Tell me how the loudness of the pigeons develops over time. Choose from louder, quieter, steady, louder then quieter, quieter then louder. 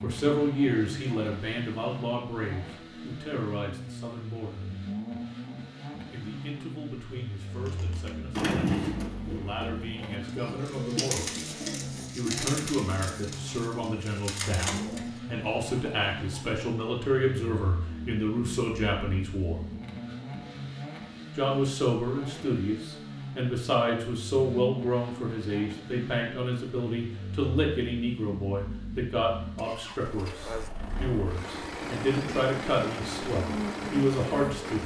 quieter.